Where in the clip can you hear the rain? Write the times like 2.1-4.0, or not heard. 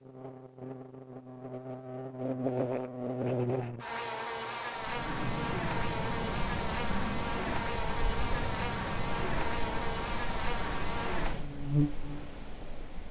4.8-13.0.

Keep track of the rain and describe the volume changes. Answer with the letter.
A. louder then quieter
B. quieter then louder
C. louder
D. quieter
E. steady
D.